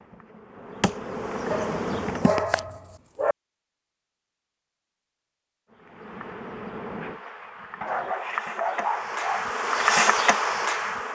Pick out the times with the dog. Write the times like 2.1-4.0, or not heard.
1.5-3.4, 7.8-9.5.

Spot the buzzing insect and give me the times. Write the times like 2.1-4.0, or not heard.
0.0-2.4, 5.7-11.1.